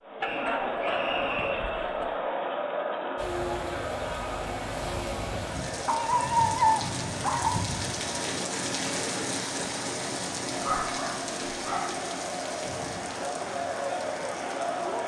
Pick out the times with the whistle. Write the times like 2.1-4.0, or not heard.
0.2-1.6.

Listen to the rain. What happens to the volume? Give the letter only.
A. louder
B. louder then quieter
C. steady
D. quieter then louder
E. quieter
B.